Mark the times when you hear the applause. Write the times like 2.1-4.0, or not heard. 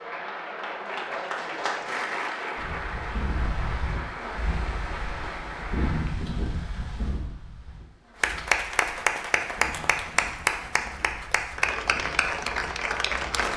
0.0-6.0, 8.2-13.5.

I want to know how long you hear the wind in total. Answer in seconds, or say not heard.
11 s.